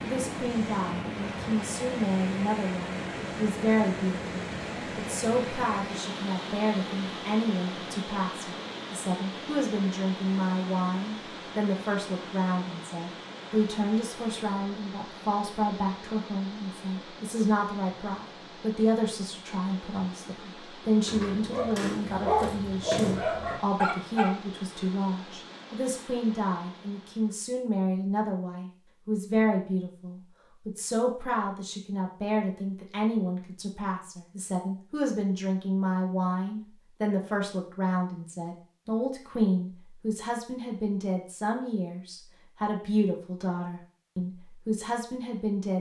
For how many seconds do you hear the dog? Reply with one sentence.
The dog can be heard for 3 seconds in total.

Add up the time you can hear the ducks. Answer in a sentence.
The ducks can't be heard in this clip.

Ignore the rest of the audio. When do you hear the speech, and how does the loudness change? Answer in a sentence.
You can hear the speech from 0.0 to 45.7 s, at a steady volume.